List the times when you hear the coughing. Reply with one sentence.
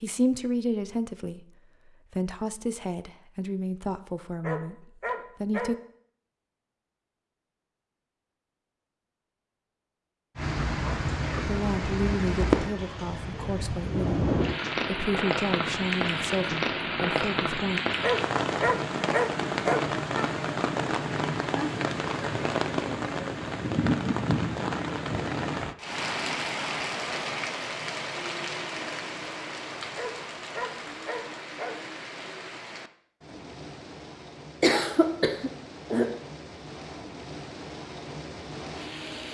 The coughing can be heard from 34.6 to 36.1 s.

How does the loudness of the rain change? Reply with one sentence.
The loudness of the rain goes down.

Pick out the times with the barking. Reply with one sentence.
You can hear the barking from 4.4 to 5.7 s, from 18.0 to 19.9 s and from 29.9 to 31.8 s.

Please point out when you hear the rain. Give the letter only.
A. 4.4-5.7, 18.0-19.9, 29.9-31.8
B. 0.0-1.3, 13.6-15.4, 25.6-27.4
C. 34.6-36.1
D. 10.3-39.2
D.